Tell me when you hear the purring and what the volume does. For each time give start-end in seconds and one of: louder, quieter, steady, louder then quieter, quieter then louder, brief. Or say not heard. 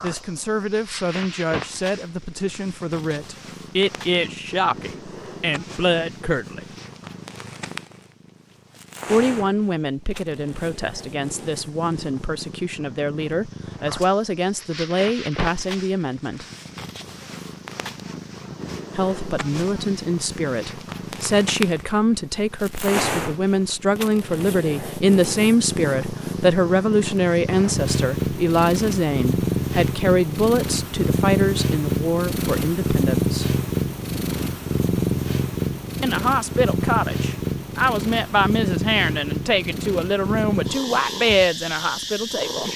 0.0-42.7 louder.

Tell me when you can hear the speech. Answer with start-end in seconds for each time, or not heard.
0.0-6.8, 9.1-16.4, 18.9-33.5, 36.0-42.7.